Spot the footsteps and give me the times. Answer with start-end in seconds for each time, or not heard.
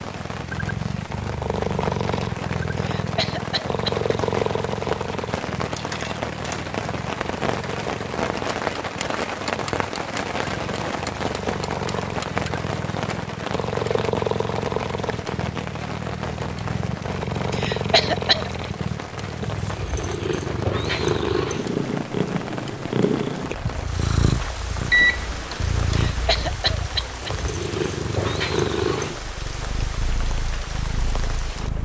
not heard.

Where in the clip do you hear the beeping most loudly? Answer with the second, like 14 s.
25 s.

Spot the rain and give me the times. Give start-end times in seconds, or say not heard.
0.0-31.8.